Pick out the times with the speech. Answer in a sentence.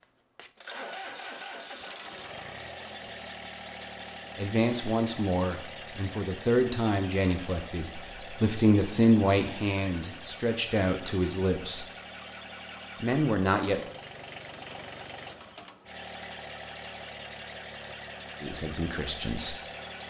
The speech can be heard from 4.3 to 11.8 s, from 13.0 to 13.8 s and from 18.4 to 19.6 s.